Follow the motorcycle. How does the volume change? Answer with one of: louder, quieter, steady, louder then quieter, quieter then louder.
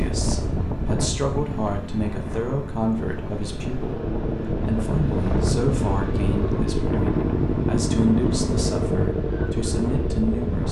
louder.